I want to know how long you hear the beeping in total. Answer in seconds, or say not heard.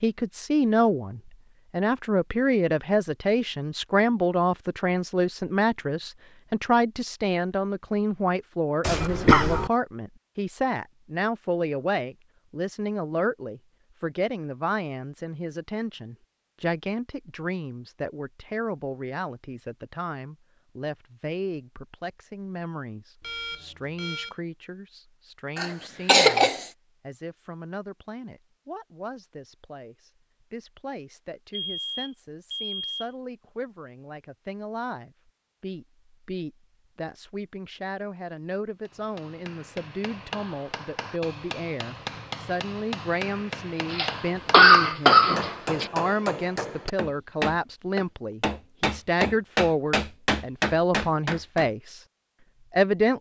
3 s.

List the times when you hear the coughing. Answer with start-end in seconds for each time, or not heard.
8.8-9.7, 25.6-26.6, 43.9-45.9.